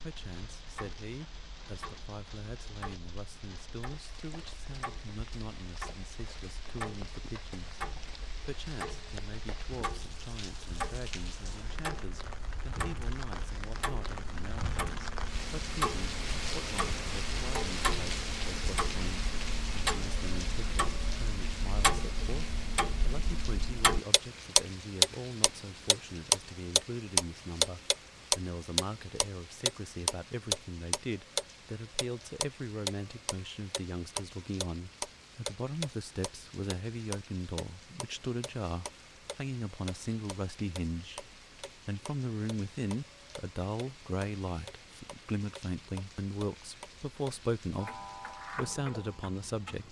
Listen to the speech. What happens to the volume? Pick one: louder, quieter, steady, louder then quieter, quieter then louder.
louder.